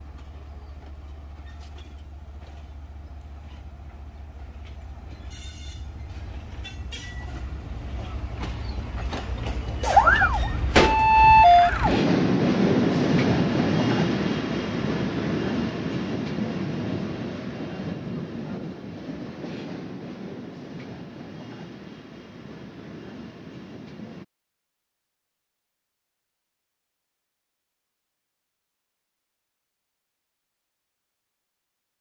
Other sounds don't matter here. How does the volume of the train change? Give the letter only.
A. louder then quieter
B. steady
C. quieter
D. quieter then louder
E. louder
A.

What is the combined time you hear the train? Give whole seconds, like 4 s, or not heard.
24 s.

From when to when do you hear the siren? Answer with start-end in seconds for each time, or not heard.
9.8-12.0.